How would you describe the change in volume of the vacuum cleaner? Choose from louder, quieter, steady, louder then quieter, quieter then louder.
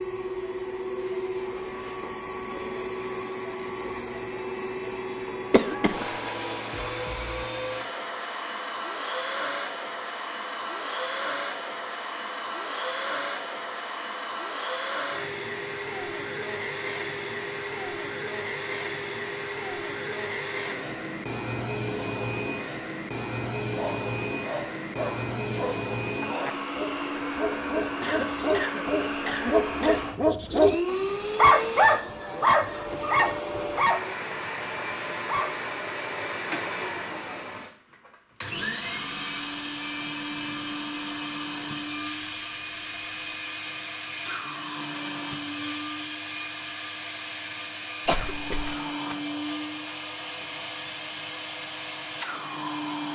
steady.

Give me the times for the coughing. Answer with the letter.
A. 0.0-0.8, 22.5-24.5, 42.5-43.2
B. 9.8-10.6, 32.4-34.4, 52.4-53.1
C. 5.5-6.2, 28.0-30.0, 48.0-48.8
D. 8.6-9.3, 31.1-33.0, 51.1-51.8
C.